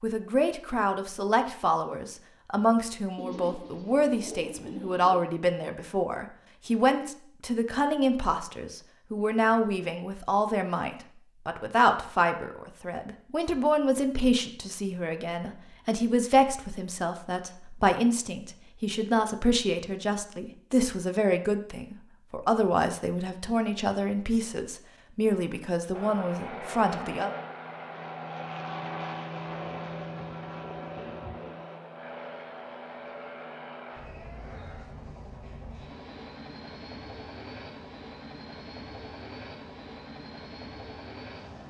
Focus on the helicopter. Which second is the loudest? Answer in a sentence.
The loudest moment of the helicopter is at 29 seconds.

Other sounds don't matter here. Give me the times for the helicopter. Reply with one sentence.
You can hear the helicopter from 25.9 to 41.6 s.